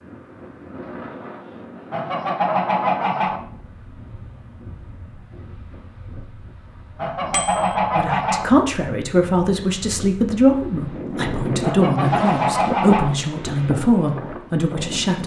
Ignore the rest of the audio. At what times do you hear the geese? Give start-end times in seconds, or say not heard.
1.9-3.4, 7.0-8.4, 11.6-13.1.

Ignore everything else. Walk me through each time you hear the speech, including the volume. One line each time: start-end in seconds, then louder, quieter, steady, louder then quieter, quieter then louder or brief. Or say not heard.
8.0-15.2 steady.